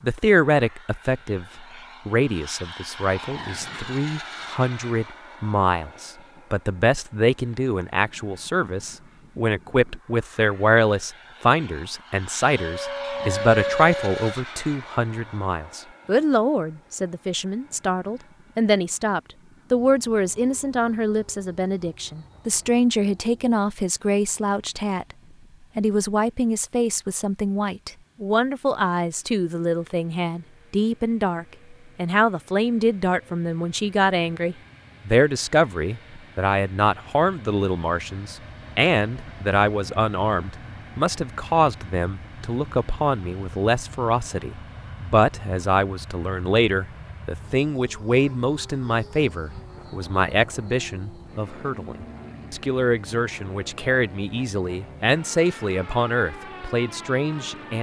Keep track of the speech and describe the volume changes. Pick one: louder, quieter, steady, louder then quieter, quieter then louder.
steady.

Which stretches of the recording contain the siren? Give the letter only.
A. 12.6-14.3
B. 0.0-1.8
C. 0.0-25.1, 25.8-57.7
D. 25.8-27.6
A.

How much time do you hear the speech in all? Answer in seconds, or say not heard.
57 s.